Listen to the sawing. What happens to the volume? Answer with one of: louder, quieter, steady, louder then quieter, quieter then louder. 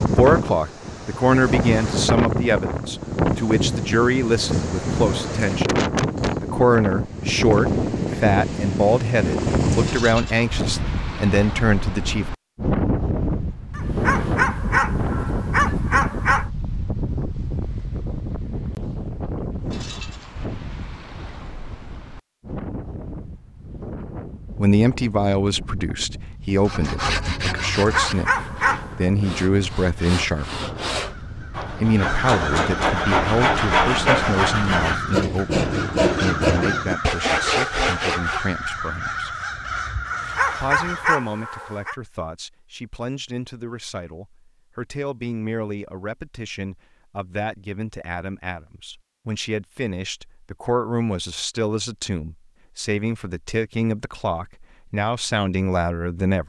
louder.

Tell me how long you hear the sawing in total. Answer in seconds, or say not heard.
12 s.